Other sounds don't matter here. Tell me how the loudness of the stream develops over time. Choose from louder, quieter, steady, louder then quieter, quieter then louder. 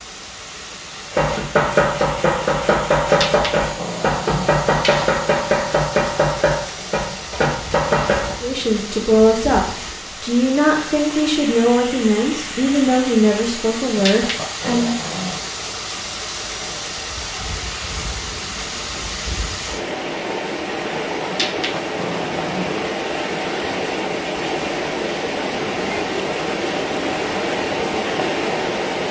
louder.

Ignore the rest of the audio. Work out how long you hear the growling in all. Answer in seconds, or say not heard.
5 s.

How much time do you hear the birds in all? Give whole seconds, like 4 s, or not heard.
not heard.